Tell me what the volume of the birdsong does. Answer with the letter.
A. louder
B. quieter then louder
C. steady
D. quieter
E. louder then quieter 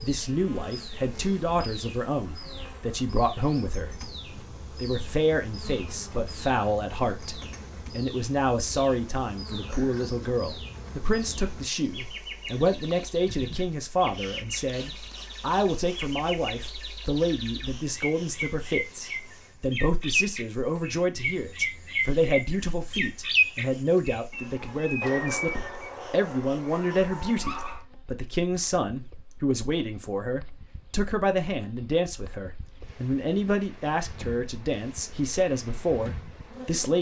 A.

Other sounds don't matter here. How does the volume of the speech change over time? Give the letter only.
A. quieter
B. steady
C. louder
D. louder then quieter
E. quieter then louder
B.